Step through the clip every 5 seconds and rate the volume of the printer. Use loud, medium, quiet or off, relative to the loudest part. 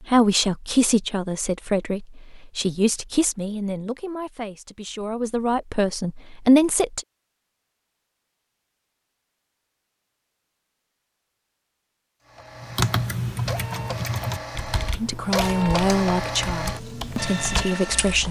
off, off, medium, loud.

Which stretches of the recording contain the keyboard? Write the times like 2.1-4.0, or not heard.
12.6-18.2.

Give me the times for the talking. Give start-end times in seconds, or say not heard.
0.0-7.0, 15.0-18.2.